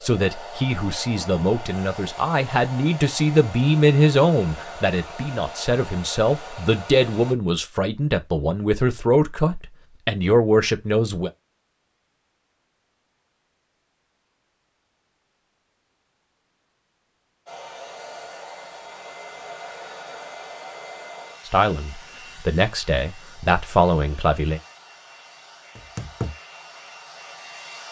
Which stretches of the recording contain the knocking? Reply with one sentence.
The knocking can be heard from 25.8 to 26.4 s.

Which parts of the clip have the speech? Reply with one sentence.
The speech can be heard from 0.0 to 11.3 s and from 21.4 to 24.6 s.